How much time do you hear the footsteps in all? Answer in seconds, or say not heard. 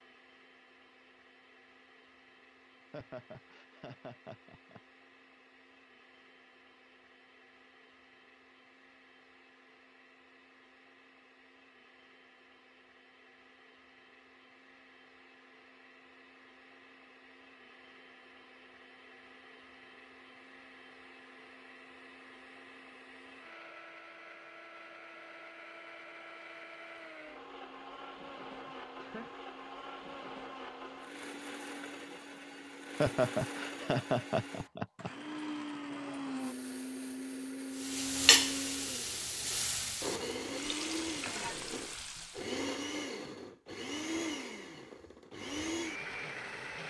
not heard.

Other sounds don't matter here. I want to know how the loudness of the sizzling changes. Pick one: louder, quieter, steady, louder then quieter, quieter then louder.
quieter.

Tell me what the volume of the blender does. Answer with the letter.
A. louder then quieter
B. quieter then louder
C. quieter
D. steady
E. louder
E.